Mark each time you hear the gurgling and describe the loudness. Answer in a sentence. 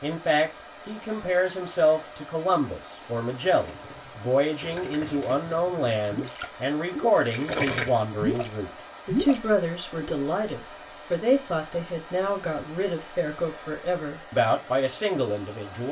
The gurgling can be heard from 3.5 to 8.5 s, getting louder; and briefly from 9.1 to 10.2 s.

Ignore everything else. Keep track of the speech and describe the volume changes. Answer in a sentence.
The loudness of the speech stays about the same.